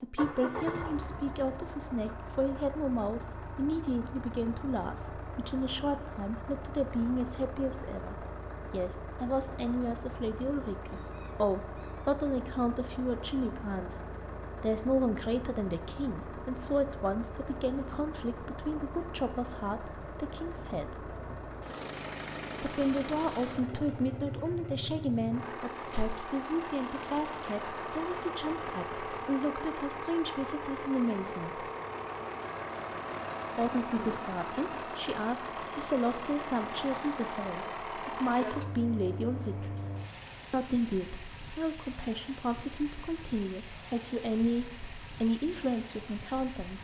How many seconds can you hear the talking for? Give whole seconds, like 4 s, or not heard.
42 s.